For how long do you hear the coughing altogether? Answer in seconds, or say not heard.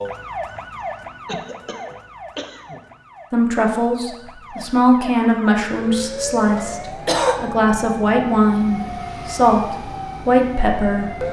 2 s.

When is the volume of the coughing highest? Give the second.
7 s.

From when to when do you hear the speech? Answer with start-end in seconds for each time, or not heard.
3.3-11.2.